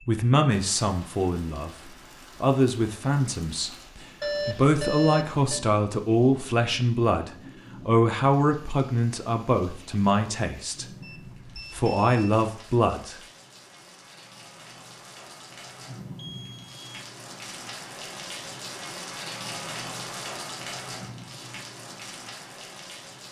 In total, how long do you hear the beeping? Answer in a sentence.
The beeping can be heard for 3 seconds in total.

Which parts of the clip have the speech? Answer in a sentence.
You can hear the speech from 0.1 to 10.8 s and from 11.7 to 13.2 s.